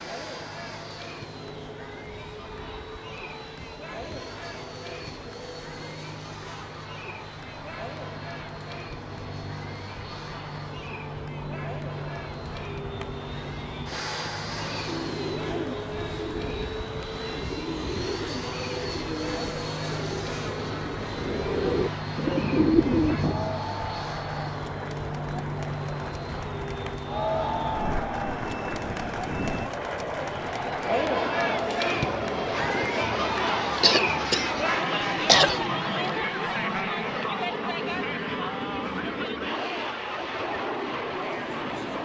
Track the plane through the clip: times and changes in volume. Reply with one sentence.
The plane can be heard from 0.0 to 42.0 s, getting louder.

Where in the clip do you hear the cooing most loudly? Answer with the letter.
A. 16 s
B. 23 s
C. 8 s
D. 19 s
B.